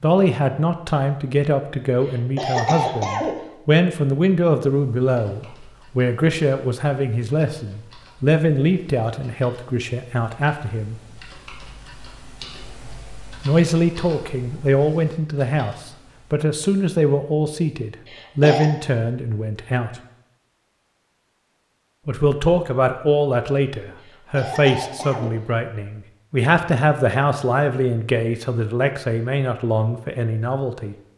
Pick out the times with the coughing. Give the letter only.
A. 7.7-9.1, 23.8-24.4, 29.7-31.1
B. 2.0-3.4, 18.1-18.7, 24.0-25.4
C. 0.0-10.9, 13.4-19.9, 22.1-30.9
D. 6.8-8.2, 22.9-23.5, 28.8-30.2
B.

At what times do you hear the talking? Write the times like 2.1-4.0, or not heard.
0.0-10.9, 13.4-19.9, 22.1-30.9.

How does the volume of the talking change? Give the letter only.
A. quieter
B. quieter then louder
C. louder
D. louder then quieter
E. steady
E.